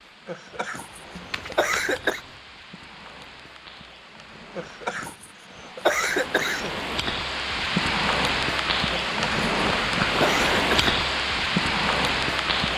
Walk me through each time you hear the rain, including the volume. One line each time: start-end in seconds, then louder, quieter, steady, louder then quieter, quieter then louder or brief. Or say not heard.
0.0-12.7 louder.